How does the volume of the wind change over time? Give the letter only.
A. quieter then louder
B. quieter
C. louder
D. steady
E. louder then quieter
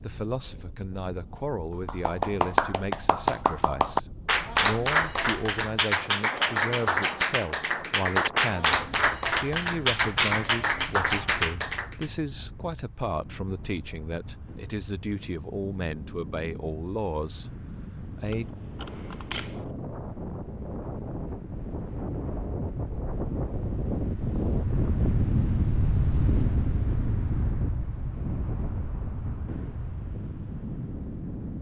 C.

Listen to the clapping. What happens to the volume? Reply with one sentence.
The volume of the clapping stays about the same.